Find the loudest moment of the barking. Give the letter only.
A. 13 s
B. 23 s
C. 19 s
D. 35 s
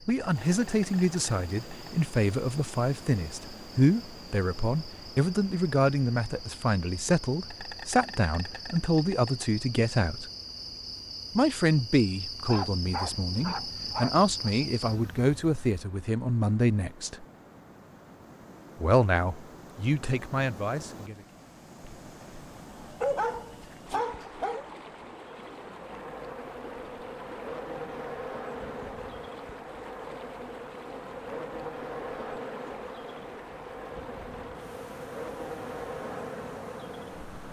B.